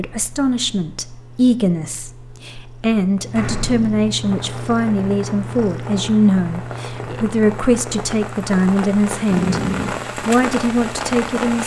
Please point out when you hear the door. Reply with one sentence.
The door can be heard from 3.4 to 4.0 s and from 9.3 to 9.9 s.